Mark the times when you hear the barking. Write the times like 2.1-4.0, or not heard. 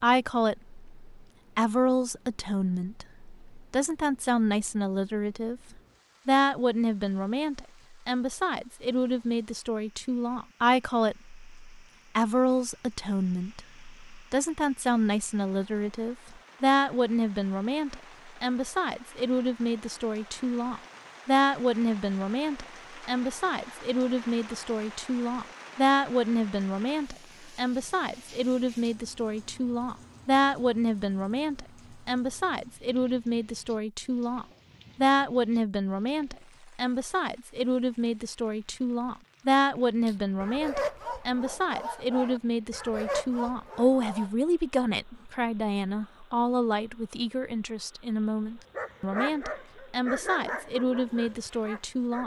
40.0-44.3, 48.7-52.2.